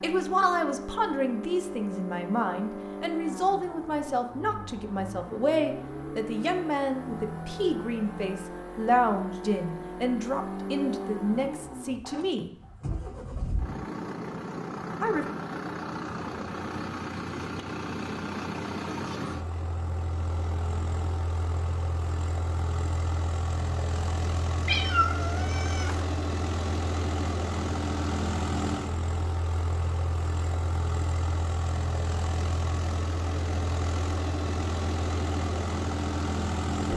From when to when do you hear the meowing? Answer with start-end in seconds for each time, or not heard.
24.6-26.0.